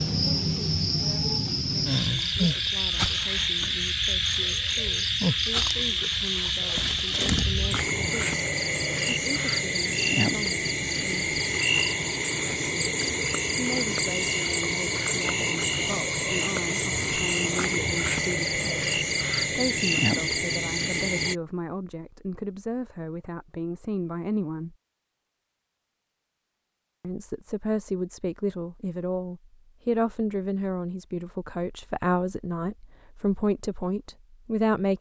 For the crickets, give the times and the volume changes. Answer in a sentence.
You can hear the crickets from 0.0 to 21.4 s, at a steady volume.